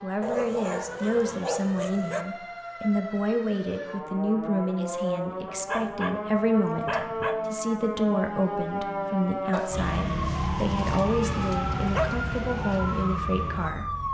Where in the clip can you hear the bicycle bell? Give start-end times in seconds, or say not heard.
not heard.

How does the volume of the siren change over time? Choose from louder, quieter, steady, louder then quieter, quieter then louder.
louder.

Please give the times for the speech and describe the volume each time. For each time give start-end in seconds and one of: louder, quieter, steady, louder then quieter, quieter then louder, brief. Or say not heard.
0.0-13.9 steady.